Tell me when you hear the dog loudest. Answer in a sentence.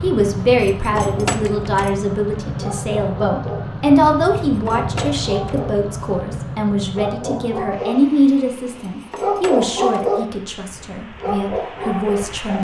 The loudest moment of the dog is at 10 seconds.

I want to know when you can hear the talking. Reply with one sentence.
The talking can be heard from 0.0 to 12.5 s.